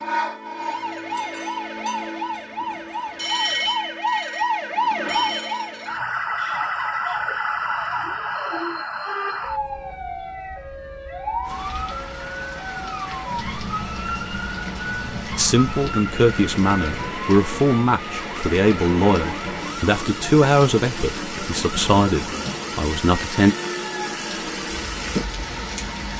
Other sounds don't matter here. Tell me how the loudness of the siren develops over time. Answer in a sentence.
The loudness of the siren goes down.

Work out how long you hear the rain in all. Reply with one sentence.
The rain can be heard for 15 seconds in total.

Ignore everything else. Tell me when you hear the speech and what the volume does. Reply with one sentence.
The speech can be heard from 15.3 to 23.6 s, at a steady volume.